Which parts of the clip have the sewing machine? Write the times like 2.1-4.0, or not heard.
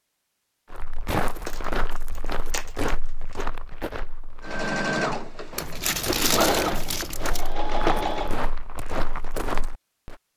4.4-8.4.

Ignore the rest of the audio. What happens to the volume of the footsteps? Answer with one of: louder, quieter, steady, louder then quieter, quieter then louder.
quieter then louder.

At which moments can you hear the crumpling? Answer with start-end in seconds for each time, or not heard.
1.4-3.5, 5.5-7.5.